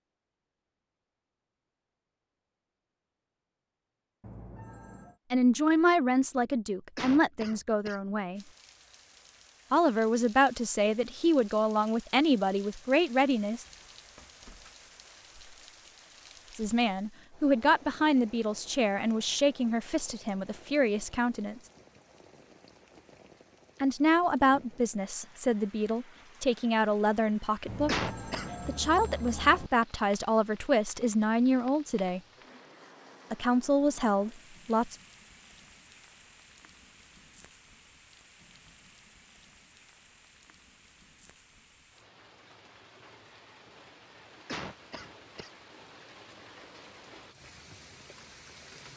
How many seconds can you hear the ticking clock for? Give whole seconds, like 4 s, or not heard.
not heard.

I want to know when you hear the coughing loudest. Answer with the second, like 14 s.
28 s.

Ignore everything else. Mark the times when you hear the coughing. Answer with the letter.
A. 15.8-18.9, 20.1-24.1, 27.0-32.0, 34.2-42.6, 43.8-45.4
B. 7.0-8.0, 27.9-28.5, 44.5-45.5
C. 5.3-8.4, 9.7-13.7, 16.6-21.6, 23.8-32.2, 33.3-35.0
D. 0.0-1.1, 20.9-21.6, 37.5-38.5
B.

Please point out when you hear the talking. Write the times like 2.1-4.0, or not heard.
5.3-8.4, 9.7-13.7, 16.6-21.6, 23.8-32.2, 33.3-35.0.